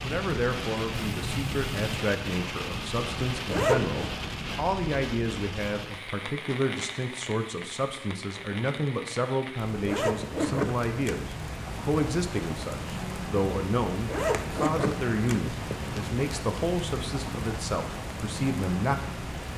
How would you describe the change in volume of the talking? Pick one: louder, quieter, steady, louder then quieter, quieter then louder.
steady.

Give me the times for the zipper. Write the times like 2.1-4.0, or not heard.
3.5-4.1, 9.8-11.2, 14.1-15.4.